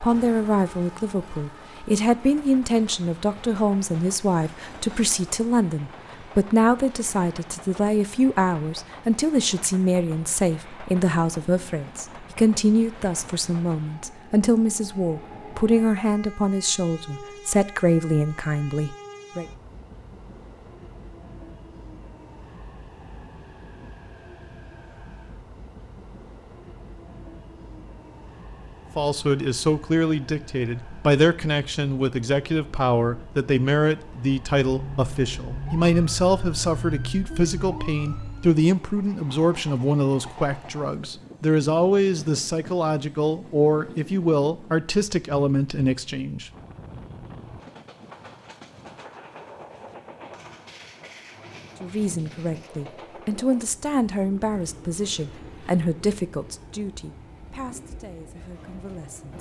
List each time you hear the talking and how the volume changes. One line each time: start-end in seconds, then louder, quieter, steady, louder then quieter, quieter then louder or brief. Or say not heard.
0.0-19.4 steady
28.9-46.5 steady
51.8-59.3 quieter.